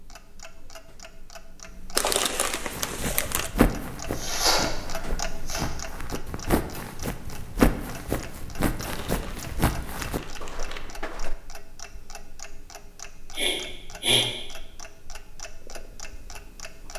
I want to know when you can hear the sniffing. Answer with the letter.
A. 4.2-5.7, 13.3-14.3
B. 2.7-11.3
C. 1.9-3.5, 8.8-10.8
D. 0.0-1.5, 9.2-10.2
A.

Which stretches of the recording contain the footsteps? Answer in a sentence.
You can hear the footsteps from 2.7 to 11.3 s.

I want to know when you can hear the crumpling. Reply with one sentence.
You can hear the crumpling from 1.9 to 3.5 s and from 8.8 to 10.8 s.